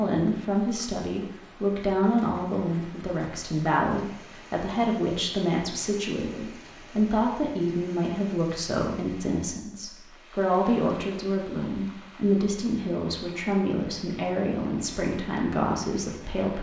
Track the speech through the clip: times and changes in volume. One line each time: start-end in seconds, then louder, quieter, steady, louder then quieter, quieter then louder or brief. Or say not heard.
0.0-16.5 steady.